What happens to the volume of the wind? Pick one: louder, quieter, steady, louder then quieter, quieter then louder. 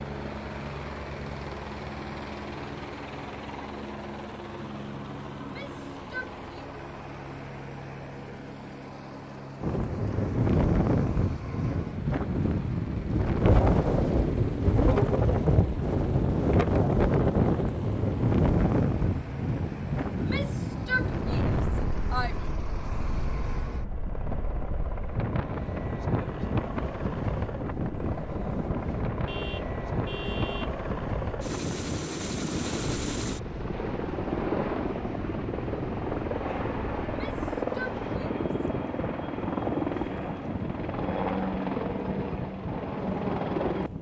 quieter.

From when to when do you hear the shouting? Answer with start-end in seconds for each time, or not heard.
5.4-6.5, 20.1-22.4, 37.0-38.6.